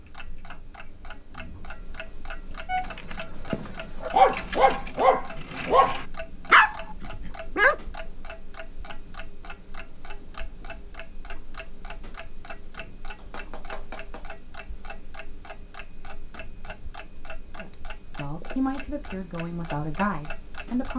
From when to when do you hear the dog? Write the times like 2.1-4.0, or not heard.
2.6-7.8.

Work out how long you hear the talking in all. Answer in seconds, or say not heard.
3 s.